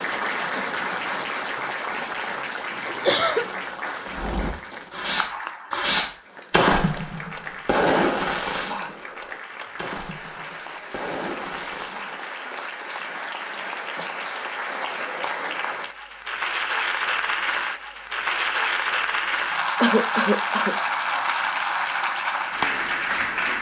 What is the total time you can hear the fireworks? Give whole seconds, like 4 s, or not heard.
8 s.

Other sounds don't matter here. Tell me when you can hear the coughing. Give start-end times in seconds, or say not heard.
2.9-3.5, 19.8-20.8.